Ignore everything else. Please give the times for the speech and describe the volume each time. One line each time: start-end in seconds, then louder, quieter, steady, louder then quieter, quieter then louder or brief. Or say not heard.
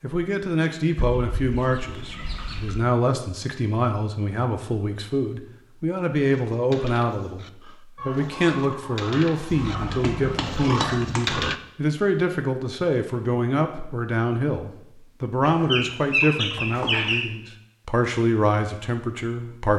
0.0-19.7 steady.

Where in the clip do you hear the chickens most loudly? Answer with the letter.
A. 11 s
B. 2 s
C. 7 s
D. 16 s
D.